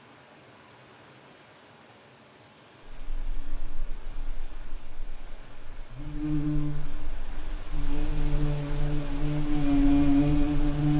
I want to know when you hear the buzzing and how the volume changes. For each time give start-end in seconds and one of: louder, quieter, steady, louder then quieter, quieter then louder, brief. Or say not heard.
2.9-10.9 louder.